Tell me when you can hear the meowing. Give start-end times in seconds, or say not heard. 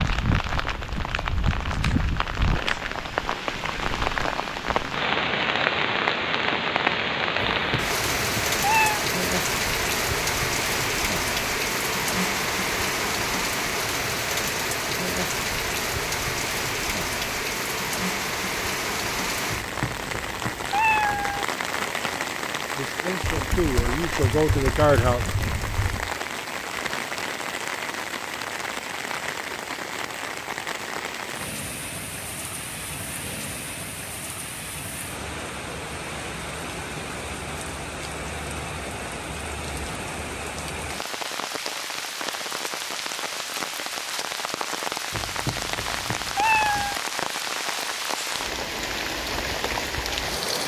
7.5-9.0, 19.4-21.4, 45.1-47.0.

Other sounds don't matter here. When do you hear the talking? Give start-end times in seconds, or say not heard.
22.8-25.2.